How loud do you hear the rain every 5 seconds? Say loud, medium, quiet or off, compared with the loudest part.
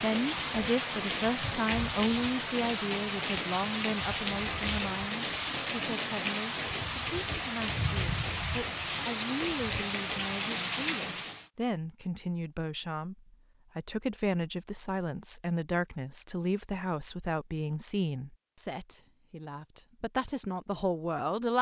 loud, loud, loud, off, off.